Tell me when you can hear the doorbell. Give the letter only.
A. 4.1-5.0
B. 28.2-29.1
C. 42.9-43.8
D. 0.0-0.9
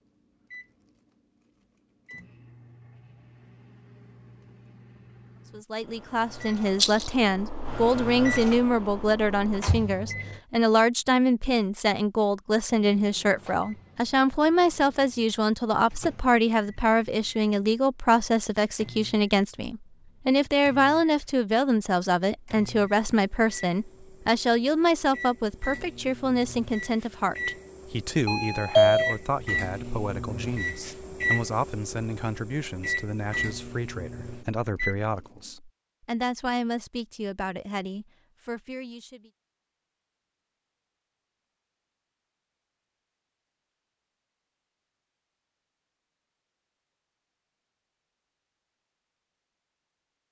B.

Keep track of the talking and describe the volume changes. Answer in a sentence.
The loudness of the talking goes down.